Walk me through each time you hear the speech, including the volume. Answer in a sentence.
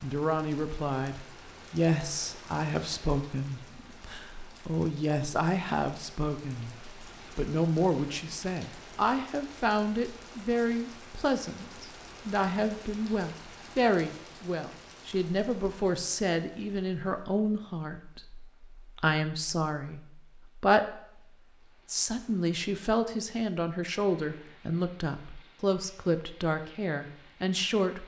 You can hear the speech from 0.0 to 28.0 s, at a steady volume.